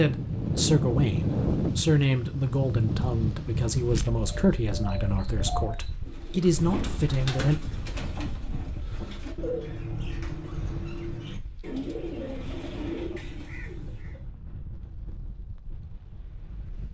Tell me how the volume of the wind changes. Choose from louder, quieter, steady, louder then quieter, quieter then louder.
quieter.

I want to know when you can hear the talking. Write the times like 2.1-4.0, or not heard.
0.0-7.5.